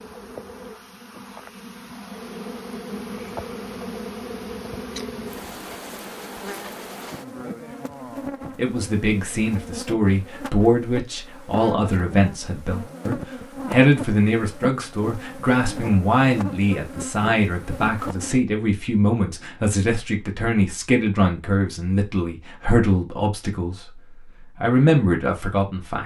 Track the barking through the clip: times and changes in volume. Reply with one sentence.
You can't hear the barking here.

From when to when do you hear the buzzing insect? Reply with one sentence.
You can hear the buzzing insect from 0.0 to 18.4 s.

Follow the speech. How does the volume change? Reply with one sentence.
The volume of the speech stays about the same.